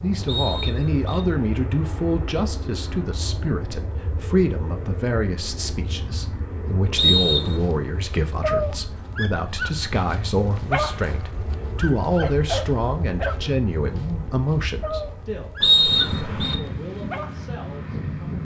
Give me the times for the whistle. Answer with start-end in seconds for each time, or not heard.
0.2-1.2, 7.0-7.6, 15.6-16.6.